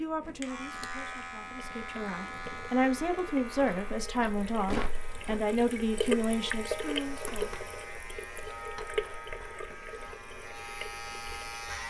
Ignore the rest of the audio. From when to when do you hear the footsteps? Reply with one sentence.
You can hear the footsteps from 3.5 to 5.4 s.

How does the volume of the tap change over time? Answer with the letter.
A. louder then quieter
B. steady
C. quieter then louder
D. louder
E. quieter
A.